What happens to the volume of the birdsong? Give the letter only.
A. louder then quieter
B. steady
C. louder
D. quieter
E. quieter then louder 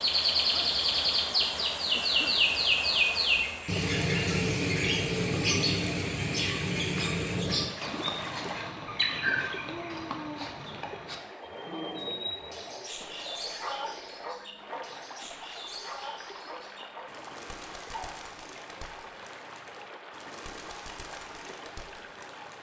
D.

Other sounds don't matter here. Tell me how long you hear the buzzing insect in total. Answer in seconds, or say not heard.
not heard.